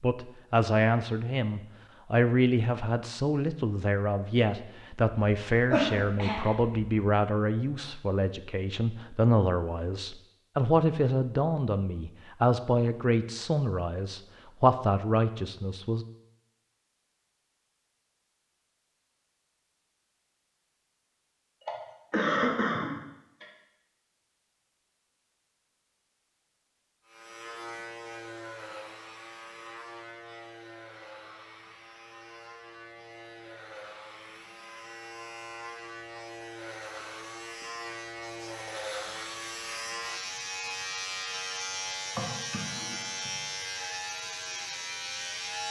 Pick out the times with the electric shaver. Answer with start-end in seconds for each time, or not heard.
27.1-45.6.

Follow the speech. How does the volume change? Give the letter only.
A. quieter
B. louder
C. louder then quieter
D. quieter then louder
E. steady
E.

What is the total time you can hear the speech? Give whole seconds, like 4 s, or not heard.
16 s.